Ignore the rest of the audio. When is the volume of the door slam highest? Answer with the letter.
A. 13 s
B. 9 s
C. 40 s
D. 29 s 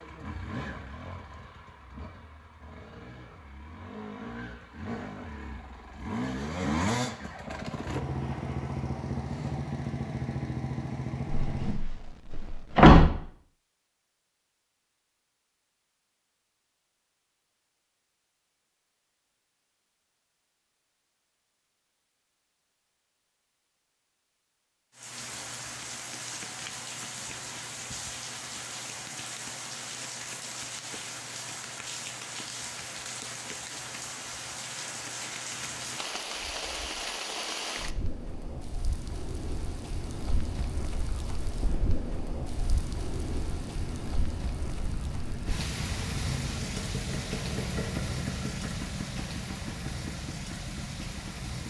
A.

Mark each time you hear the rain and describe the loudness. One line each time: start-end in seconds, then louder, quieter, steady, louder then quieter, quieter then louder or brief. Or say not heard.
24.9-51.6 steady.